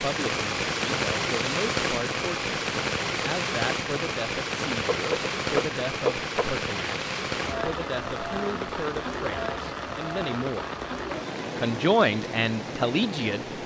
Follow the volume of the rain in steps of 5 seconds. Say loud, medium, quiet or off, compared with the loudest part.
loud, loud, medium.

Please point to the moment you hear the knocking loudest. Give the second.
6 s.